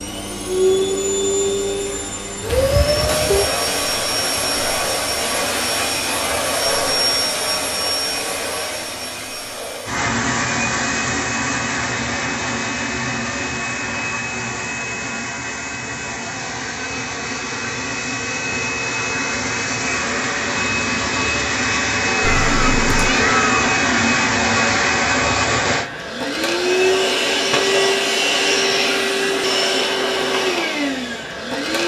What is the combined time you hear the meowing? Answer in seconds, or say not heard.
2 s.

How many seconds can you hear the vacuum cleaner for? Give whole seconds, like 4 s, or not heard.
32 s.